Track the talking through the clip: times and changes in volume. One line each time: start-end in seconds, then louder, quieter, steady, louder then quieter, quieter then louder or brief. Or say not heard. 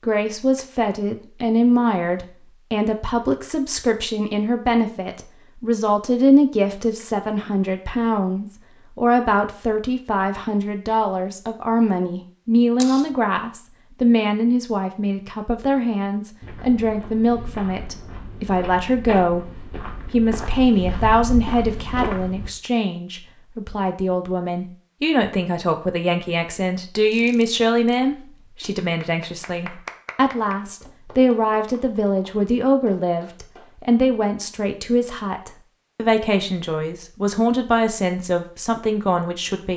0.0-39.7 steady.